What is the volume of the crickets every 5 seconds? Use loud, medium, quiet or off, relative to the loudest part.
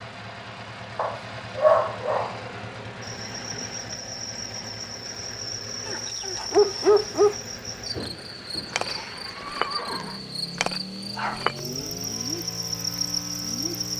medium, loud, loud.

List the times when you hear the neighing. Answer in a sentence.
You can hear the neighing from 3.3 to 3.8 s and from 7.9 to 10.2 s.